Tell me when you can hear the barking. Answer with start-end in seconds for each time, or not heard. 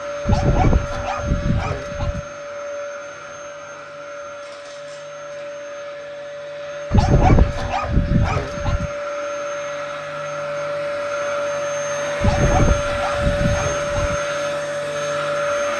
0.2-2.2, 6.9-8.9, 12.2-14.2.